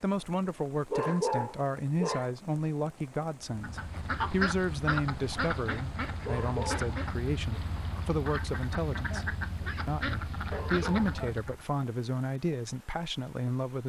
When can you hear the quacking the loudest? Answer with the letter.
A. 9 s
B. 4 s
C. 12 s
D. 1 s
B.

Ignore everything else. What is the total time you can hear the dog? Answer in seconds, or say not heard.
3 s.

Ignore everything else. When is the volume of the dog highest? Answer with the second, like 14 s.
1 s.